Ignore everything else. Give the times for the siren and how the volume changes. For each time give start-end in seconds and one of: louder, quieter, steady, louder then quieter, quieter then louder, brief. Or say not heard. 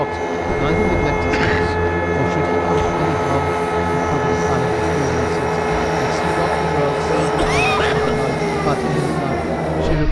0.0-10.0 steady.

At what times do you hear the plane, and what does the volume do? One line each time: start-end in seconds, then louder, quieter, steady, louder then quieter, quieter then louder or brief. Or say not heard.
0.0-10.0 steady.